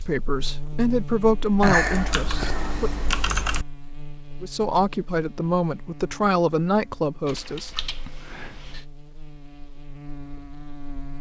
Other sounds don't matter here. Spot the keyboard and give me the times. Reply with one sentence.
You can hear the keyboard from 1.6 to 3.6 s and from 7.2 to 8.8 s.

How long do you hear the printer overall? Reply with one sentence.
You can't hear the printer here.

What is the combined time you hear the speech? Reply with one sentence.
You can hear the speech for 6 seconds altogether.